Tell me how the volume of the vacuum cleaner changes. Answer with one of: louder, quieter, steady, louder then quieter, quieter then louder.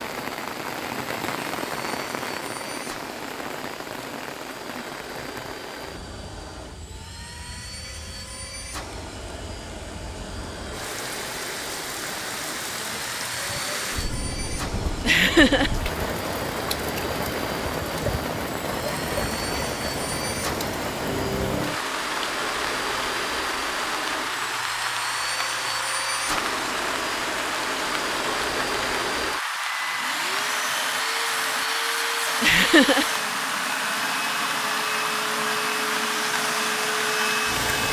louder.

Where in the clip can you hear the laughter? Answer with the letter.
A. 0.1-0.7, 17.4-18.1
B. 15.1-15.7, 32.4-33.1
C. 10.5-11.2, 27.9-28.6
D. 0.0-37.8
B.